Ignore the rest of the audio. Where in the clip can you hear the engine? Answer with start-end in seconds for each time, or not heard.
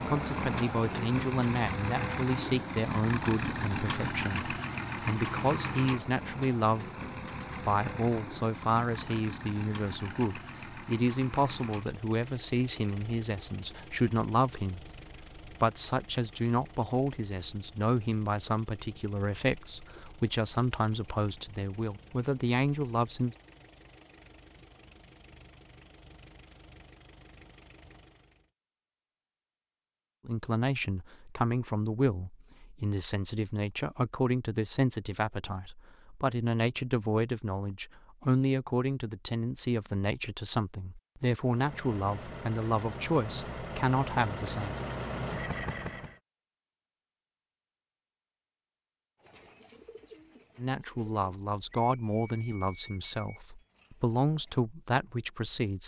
0.0-28.5, 41.4-46.1.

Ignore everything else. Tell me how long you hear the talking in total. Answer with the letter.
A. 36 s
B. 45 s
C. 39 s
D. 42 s
D.